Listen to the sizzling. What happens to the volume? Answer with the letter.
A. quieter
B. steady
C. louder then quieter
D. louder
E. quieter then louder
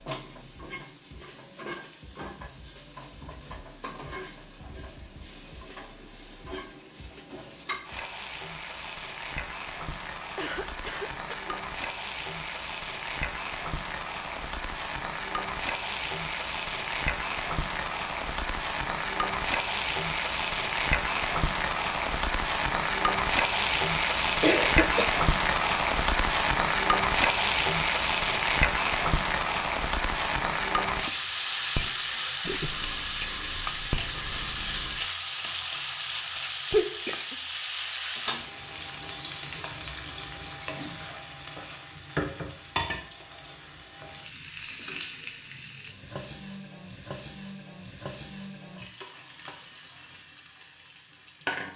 C.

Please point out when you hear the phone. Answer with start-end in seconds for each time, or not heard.
32.5-35.1.